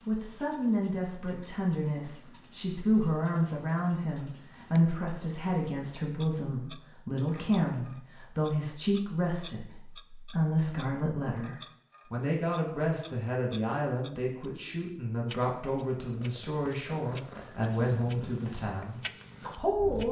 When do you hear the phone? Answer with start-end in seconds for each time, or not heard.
not heard.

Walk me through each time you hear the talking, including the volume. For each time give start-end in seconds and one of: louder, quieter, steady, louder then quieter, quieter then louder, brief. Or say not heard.
0.1-20.0 steady.